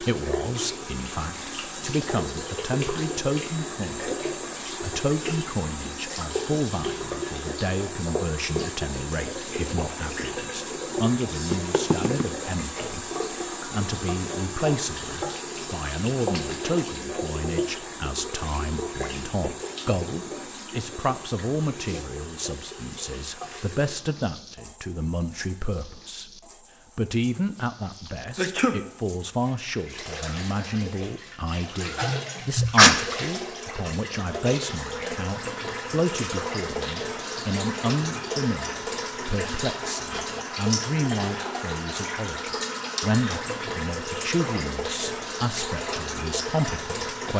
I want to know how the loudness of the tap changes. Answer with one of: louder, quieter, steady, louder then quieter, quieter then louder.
quieter then louder.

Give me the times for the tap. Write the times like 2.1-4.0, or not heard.
0.0-47.3.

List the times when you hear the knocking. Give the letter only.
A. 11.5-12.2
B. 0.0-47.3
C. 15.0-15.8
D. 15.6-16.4
A.